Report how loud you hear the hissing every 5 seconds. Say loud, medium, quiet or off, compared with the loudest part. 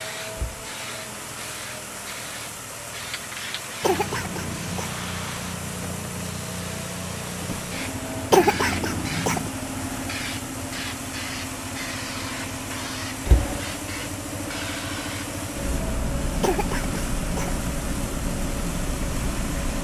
medium, loud, loud, loud.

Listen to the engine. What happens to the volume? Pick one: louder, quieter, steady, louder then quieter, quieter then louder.
steady.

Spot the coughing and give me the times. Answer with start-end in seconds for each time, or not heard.
3.8-4.9, 8.3-9.5, 16.4-17.6.